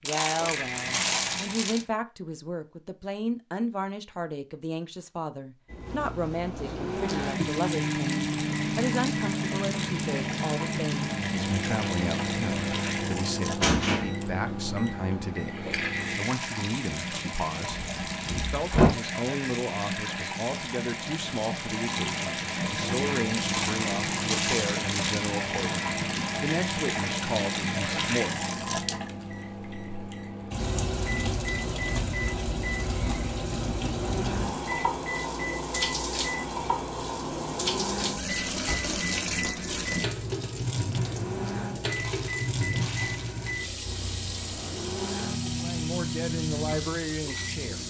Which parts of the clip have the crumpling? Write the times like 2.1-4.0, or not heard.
0.1-1.9, 23.4-25.3, 41.9-43.6.